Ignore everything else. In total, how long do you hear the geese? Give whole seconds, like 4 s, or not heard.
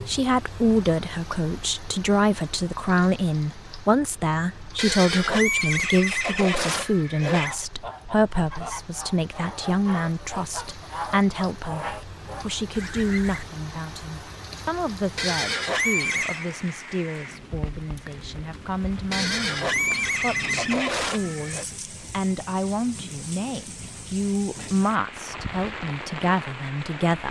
6 s.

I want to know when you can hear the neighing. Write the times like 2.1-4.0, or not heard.
4.8-7.5, 15.2-16.4, 19.1-21.6.